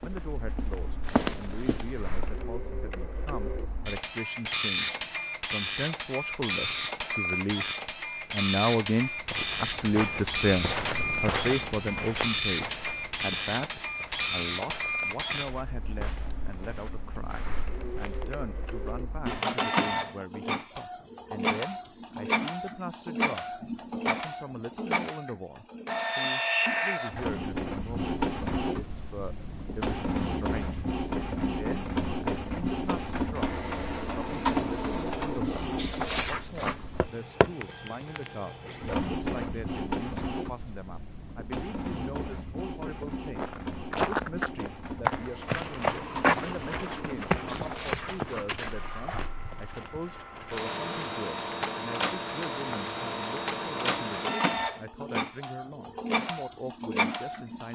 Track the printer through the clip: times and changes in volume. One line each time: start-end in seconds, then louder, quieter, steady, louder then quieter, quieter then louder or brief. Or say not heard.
0.0-57.7 steady.